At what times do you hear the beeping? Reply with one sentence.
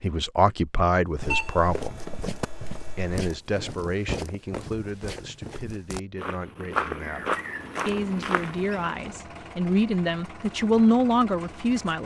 The beeping can be heard from 1.1 to 3.3 s.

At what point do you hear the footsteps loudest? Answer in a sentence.
The volume of the footsteps peaks at 7 seconds.